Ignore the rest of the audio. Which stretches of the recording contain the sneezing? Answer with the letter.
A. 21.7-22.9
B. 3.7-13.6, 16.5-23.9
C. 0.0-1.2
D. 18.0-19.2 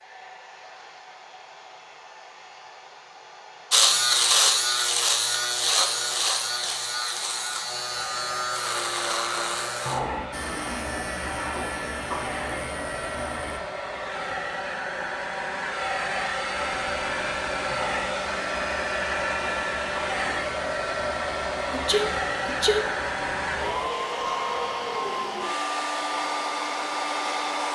A.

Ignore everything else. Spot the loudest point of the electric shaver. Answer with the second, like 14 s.
4 s.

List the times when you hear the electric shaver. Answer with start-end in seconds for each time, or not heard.
3.7-13.6, 16.5-23.9.